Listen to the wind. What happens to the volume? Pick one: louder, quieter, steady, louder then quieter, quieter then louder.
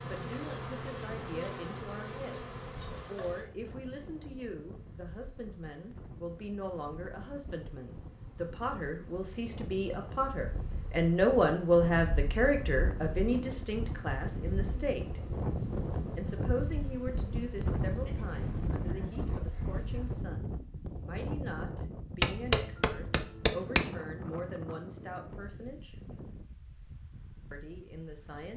louder then quieter.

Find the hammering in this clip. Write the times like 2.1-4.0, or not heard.
22.2-23.9.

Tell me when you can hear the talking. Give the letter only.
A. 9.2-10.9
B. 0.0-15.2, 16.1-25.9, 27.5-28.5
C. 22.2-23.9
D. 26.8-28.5
B.